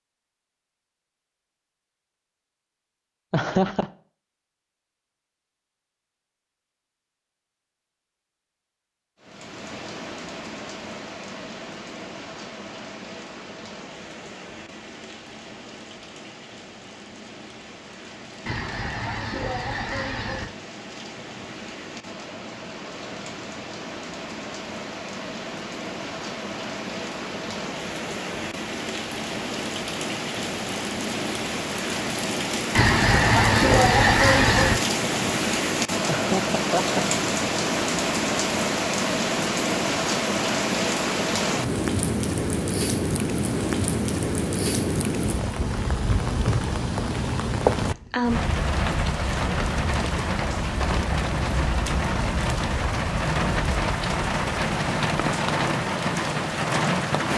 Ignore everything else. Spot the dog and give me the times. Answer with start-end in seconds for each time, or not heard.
not heard.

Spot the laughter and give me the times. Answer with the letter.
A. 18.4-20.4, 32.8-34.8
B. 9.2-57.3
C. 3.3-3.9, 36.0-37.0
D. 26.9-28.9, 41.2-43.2
C.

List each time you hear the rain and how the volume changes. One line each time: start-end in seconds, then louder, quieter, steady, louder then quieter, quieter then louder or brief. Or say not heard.
9.2-57.3 louder.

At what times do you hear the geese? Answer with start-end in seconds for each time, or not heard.
18.4-20.4, 32.8-34.8.